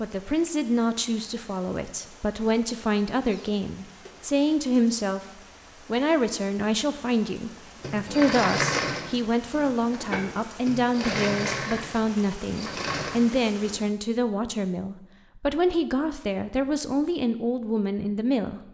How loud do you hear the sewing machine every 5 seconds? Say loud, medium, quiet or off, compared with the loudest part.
off, loud, loud, off.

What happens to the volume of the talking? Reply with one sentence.
The loudness of the talking stays about the same.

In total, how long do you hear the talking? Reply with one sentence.
You can hear the talking for 18 seconds altogether.